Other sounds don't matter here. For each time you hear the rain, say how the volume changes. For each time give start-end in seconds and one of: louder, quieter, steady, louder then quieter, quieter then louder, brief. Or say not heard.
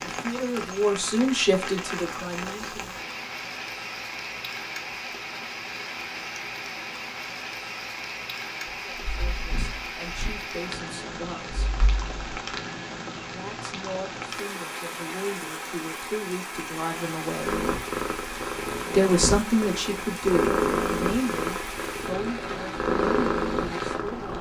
0.0-24.3 steady.